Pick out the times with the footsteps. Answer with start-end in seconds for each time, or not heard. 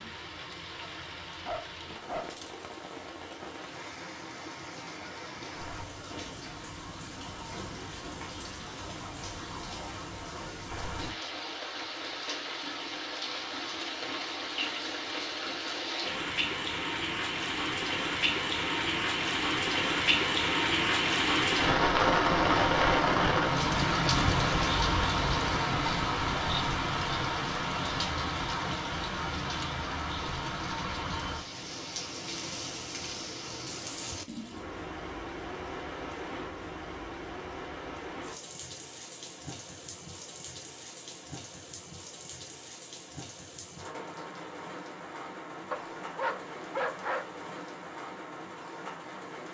not heard.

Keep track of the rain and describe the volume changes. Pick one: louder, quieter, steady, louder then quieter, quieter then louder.
louder then quieter.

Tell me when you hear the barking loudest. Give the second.
47 s.